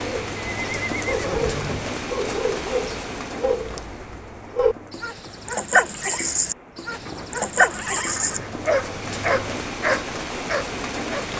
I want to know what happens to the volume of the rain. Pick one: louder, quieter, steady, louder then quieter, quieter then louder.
quieter then louder.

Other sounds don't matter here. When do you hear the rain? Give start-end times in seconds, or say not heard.
0.0-11.3.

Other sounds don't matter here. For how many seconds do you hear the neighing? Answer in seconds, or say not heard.
3 s.